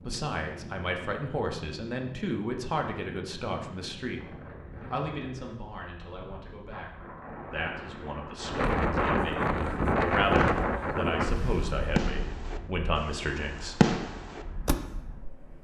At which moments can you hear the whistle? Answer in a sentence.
You can't hear the whistle here.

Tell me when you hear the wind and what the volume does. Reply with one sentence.
You can hear the wind from 0.0 to 15.6 s, getting louder then quieter.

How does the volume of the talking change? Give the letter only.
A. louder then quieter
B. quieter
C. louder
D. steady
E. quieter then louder
E.